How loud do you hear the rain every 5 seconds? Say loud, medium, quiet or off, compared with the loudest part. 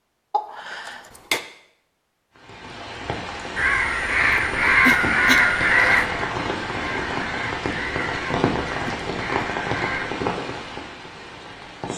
medium, loud, loud.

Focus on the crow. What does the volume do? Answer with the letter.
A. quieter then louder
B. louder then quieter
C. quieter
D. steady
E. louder
C.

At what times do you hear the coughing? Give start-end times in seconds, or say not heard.
0.3-1.4, 4.7-5.5, 8.8-9.5.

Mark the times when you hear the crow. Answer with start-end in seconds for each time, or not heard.
3.5-10.2.